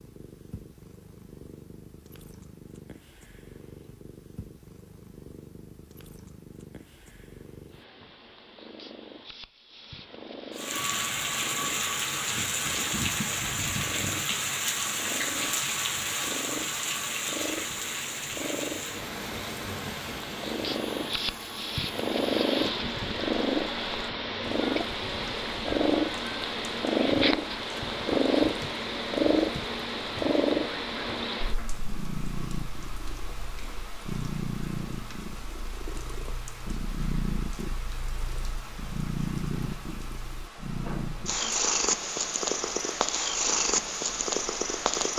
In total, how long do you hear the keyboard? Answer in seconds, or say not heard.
not heard.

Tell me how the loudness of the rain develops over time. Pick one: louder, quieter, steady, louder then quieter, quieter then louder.
quieter.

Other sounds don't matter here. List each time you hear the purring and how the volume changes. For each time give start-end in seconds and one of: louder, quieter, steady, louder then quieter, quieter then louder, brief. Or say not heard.
0.0-45.1 louder.